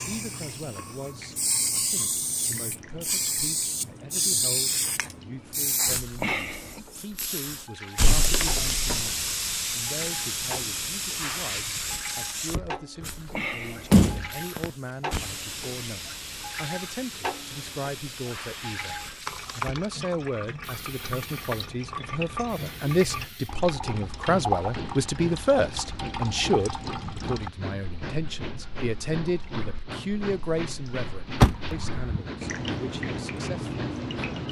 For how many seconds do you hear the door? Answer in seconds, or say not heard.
3 s.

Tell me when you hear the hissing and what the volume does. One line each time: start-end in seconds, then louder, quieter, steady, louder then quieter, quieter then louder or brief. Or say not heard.
0.0-34.4 quieter.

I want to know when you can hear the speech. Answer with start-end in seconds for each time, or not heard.
0.0-34.4.